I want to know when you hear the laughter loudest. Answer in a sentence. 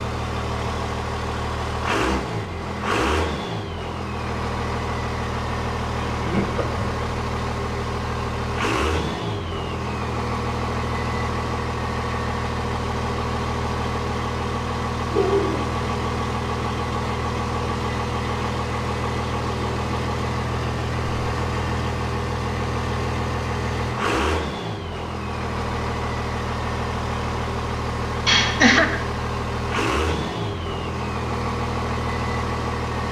The volume of the laughter peaks at 29 seconds.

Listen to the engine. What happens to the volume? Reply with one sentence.
The volume of the engine stays about the same.